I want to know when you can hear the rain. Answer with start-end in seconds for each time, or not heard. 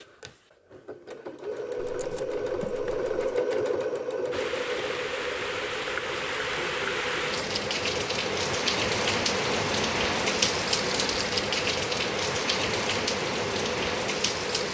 4.3-14.6.